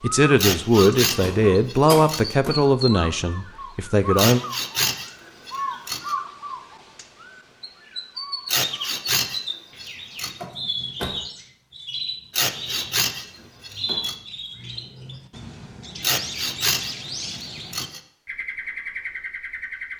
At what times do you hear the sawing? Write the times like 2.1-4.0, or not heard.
0.3-2.4, 4.2-6.2, 8.4-10.3, 12.3-14.2, 16.0-18.0.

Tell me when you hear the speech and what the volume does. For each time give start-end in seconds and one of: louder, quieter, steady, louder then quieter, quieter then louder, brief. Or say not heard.
0.0-4.4 quieter.